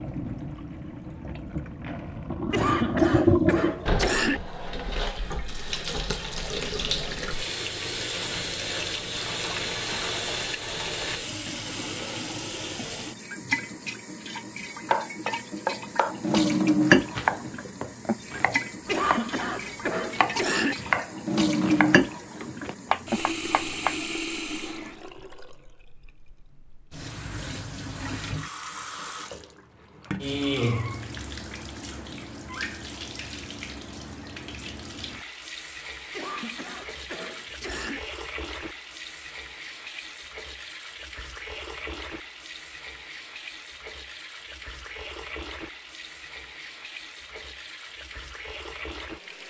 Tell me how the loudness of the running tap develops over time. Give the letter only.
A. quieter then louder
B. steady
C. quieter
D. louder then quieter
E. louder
C.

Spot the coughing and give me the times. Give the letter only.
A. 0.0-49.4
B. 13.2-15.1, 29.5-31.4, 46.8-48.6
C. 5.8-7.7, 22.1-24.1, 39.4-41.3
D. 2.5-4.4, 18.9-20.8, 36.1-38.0
D.